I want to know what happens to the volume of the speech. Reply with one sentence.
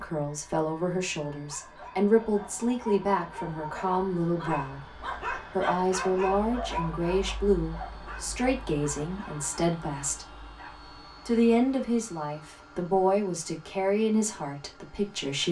The volume of the speech stays about the same.